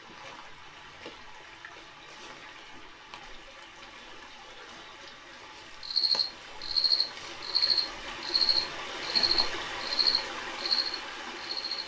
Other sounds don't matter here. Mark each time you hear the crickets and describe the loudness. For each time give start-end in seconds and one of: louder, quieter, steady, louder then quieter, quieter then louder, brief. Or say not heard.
5.8-11.8 steady.